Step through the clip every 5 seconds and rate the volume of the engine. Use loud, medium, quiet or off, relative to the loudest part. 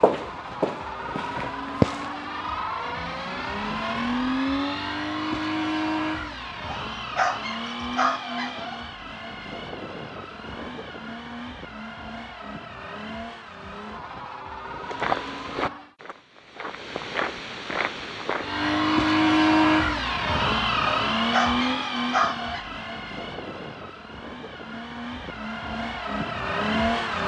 medium, medium, quiet, loud, medium, medium.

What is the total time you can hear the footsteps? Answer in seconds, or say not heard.
6 s.